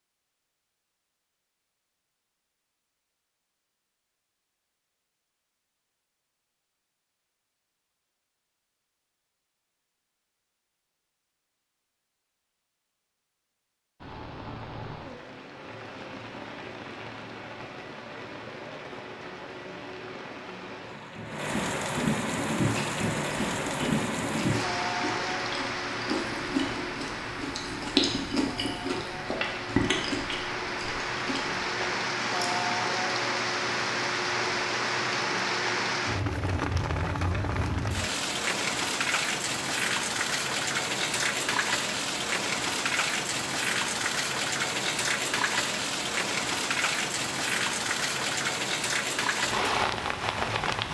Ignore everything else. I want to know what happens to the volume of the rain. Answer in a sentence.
The volume of the rain goes up.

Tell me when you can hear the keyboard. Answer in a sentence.
You can't hear the keyboard here.